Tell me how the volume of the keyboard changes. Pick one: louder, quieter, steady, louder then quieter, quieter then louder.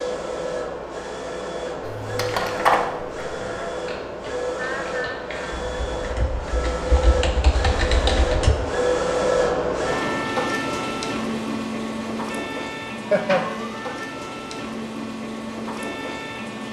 quieter then louder.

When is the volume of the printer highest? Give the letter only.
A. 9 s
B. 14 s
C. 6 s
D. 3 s
A.